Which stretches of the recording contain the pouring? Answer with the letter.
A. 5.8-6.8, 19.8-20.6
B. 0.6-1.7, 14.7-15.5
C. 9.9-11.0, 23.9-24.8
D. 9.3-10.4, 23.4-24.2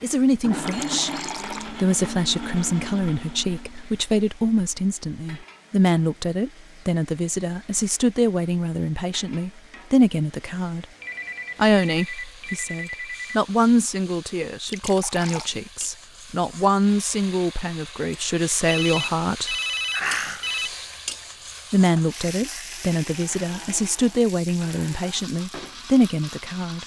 B.